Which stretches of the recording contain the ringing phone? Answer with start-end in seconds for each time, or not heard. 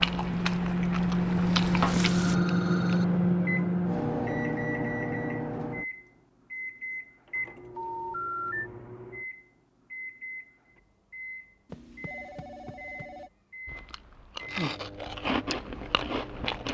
2.1-3.0, 7.8-8.7, 11.7-13.3.